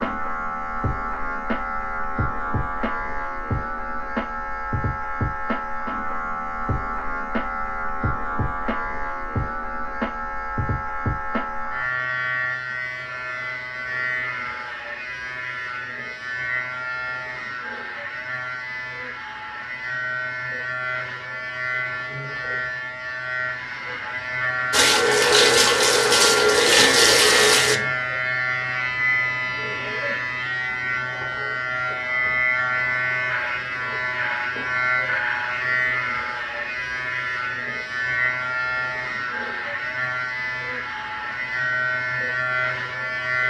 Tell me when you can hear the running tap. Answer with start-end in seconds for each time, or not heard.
24.7-27.8.